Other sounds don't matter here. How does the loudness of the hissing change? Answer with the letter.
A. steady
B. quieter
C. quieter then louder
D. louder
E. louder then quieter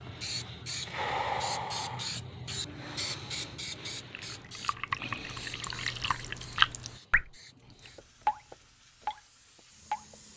B.